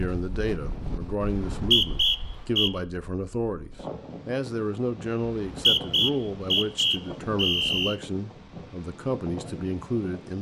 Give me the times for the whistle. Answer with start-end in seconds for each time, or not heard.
1.5-2.7, 5.2-8.0.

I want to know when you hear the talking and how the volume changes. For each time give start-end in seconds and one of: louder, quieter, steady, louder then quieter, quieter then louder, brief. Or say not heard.
0.0-10.3 steady.